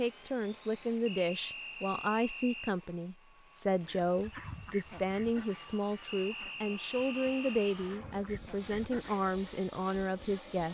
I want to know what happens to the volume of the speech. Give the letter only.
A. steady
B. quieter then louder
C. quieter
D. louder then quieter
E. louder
A.